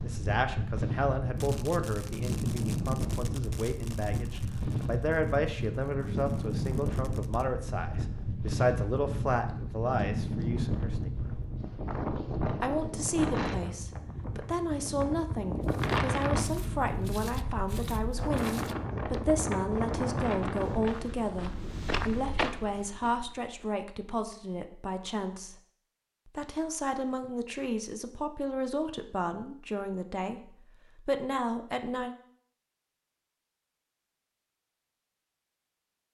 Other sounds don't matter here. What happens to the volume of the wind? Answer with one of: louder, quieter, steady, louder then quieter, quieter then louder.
steady.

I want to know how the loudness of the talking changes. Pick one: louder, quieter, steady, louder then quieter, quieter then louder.
steady.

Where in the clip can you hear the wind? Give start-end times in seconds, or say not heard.
0.0-21.1.